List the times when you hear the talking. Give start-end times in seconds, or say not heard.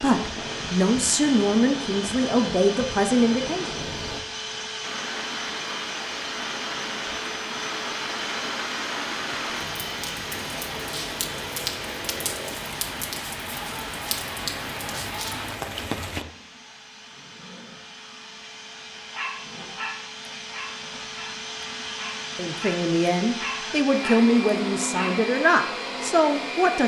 0.0-3.7, 22.4-26.8.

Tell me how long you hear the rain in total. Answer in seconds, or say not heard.
16 s.